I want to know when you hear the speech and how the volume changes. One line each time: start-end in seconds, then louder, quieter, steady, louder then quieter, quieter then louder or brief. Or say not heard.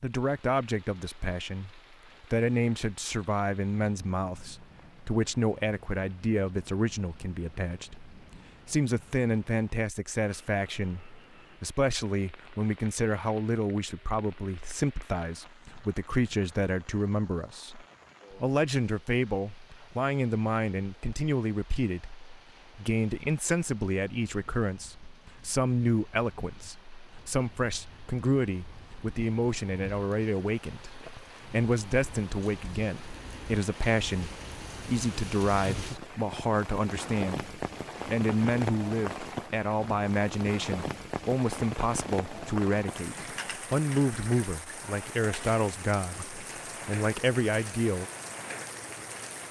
0.0-48.0 steady.